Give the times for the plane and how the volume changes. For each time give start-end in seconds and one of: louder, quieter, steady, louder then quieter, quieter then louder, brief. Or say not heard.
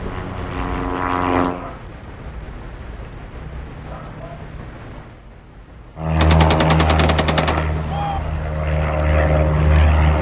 0.0-1.7 brief
6.0-10.1 quieter then louder.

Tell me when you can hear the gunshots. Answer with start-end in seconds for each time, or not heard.
6.2-8.2.